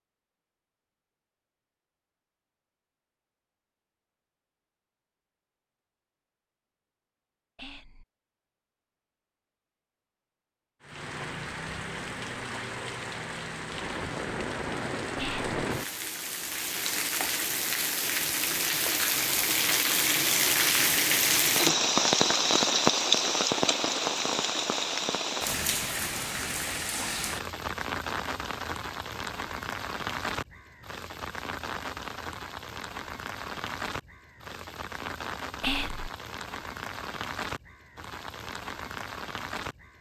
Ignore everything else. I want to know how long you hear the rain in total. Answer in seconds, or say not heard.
29 s.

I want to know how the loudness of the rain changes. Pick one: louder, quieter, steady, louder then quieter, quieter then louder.
louder then quieter.